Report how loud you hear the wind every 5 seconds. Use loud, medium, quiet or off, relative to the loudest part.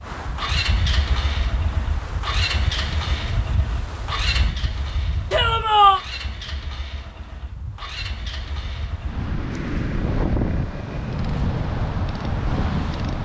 medium, medium, loud.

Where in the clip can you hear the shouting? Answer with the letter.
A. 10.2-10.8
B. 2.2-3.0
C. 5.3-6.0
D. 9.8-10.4
C.